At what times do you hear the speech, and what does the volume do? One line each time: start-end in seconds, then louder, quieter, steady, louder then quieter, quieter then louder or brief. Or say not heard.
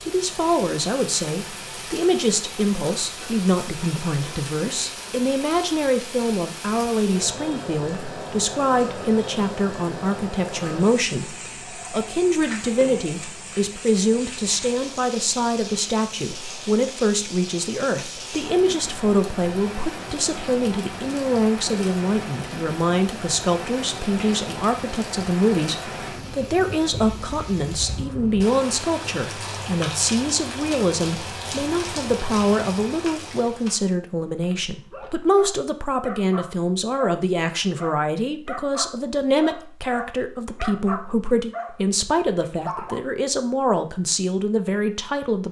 0.0-45.4 steady.